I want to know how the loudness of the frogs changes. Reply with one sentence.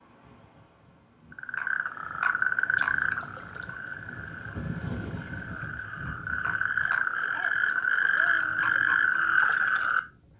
The volume of the frogs goes down, then up.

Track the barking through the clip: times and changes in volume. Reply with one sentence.
The barking can't be heard in this clip.